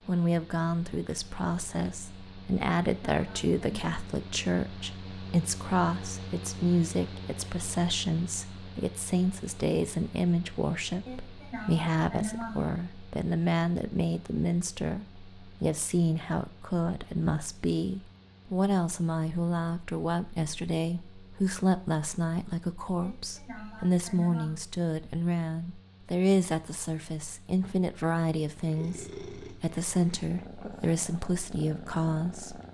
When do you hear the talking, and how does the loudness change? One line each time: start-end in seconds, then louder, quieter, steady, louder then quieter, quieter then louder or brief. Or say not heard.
0.1-32.6 steady.